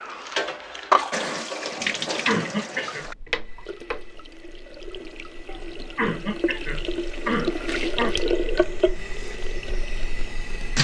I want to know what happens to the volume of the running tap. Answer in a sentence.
The volume of the running tap goes down, then up.